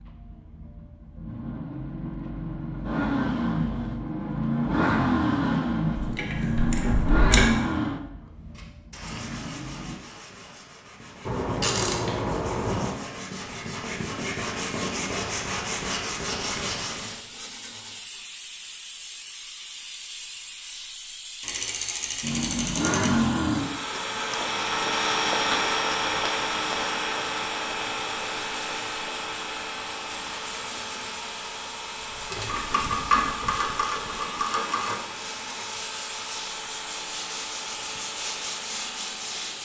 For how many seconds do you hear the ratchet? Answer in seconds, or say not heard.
8 s.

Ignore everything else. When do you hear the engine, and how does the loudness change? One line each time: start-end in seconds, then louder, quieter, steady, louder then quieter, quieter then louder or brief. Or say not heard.
0.0-10.0 louder then quieter
22.2-39.6 quieter.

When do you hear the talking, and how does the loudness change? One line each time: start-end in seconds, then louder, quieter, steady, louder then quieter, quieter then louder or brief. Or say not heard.
not heard.